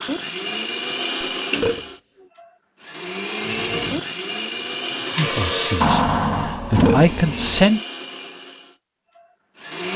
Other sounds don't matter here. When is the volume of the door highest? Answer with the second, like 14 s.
6 s.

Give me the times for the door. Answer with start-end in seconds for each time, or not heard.
1.5-2.2, 5.8-7.5.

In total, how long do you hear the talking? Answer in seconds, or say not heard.
3 s.